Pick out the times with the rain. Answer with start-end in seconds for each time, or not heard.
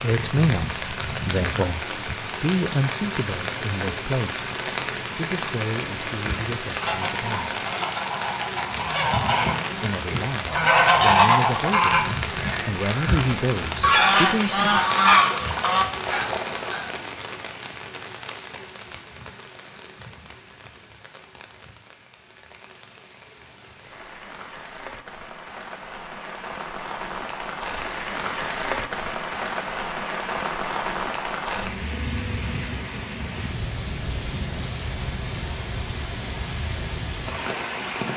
0.0-38.1.